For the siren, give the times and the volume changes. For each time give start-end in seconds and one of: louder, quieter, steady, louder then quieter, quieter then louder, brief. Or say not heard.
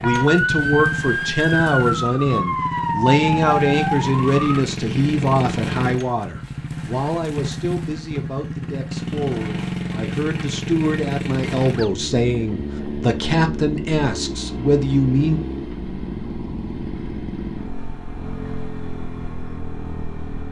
0.0-4.6 steady.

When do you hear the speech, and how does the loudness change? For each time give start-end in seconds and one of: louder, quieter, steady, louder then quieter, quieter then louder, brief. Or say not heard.
0.0-15.4 quieter then louder.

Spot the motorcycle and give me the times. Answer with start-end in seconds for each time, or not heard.
0.0-20.4.